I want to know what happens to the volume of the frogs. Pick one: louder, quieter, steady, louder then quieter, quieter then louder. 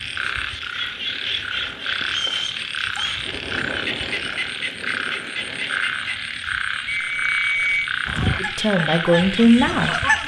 steady.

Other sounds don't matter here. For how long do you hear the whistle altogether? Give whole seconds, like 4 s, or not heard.
2 s.